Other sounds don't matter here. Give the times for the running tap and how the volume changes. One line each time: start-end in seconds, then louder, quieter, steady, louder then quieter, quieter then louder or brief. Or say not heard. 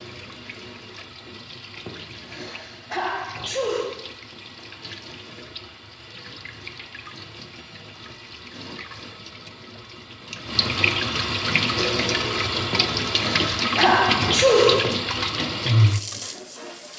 0.0-16.9 louder.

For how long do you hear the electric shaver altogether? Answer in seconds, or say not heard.
not heard.